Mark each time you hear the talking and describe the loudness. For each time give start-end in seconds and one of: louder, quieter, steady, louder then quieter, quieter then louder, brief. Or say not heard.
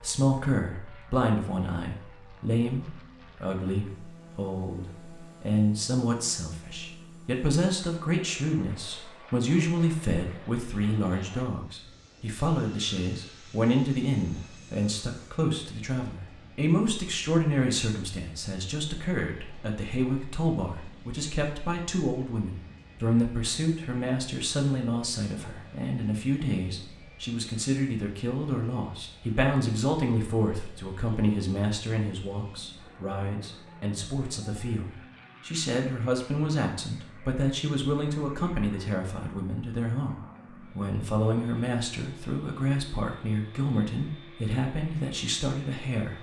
0.0-46.1 steady.